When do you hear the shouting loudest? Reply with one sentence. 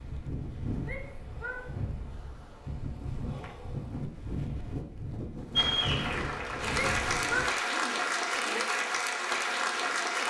The volume of the shouting peaks at 7 seconds.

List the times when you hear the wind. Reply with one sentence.
You can hear the wind from 0.0 to 7.5 s.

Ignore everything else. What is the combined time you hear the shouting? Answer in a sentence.
You can hear the shouting for 3 seconds altogether.